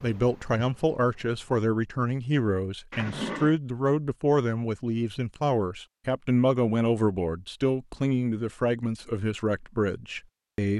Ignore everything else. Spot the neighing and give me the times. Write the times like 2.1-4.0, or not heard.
2.9-3.5.